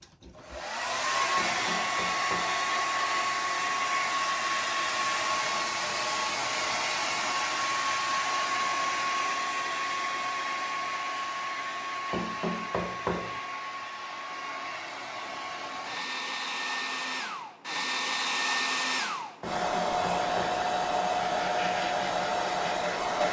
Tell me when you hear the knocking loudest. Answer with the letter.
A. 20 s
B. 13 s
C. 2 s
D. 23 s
B.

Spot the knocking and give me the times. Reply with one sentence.
You can hear the knocking from 1.4 to 2.6 s, from 12.1 to 13.4 s and from 19.4 to 20.6 s.